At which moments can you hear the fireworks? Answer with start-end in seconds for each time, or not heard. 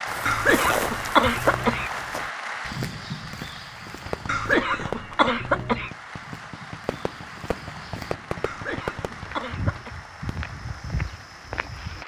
4.0-10.4.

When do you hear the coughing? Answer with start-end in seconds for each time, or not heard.
0.2-1.9, 4.2-5.9, 8.4-9.9.